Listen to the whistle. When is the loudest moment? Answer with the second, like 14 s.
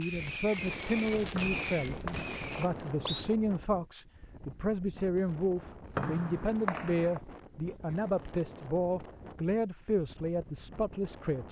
6 s.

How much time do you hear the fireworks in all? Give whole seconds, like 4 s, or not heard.
3 s.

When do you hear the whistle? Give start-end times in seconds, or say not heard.
1.4-3.2, 6.0-7.2.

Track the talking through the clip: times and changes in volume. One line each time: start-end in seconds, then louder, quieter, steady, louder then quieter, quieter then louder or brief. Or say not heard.
0.0-11.4 steady.